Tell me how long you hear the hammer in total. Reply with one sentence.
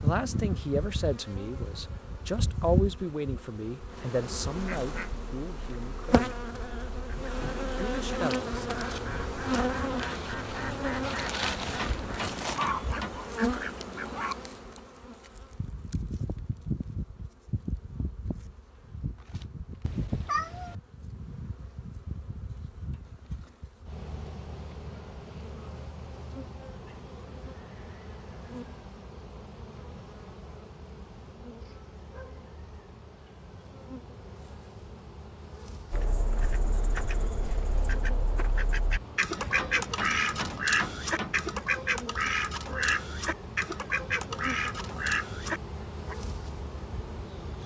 You can hear the hammer for 4 seconds altogether.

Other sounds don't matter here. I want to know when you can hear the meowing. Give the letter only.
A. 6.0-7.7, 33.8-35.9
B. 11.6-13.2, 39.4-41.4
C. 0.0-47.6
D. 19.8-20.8
D.